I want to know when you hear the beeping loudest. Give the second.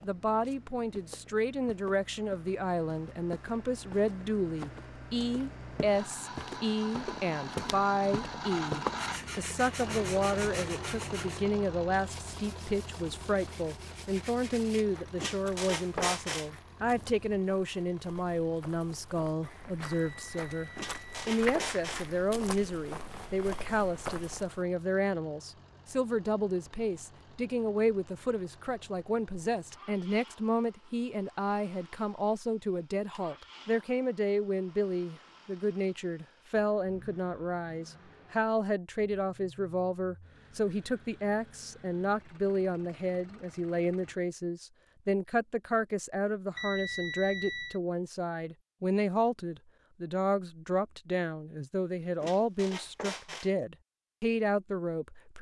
47 s.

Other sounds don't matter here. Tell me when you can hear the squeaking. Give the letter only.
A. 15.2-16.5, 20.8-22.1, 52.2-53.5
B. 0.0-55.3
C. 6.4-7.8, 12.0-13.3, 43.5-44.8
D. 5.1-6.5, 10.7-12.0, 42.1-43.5
A.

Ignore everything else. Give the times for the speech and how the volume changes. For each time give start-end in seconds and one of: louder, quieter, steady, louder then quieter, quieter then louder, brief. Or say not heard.
0.0-55.3 steady.